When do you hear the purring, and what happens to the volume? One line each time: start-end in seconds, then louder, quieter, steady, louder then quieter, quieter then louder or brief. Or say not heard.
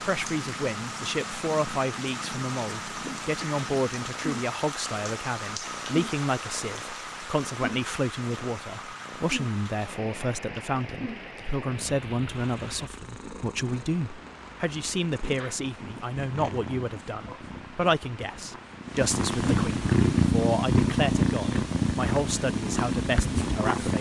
0.0-23.9 louder.